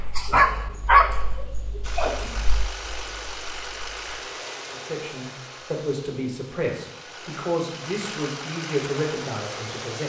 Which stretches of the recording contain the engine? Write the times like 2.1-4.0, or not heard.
1.8-10.0.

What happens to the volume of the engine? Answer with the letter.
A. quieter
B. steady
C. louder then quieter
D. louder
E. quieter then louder
E.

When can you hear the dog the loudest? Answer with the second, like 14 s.
1 s.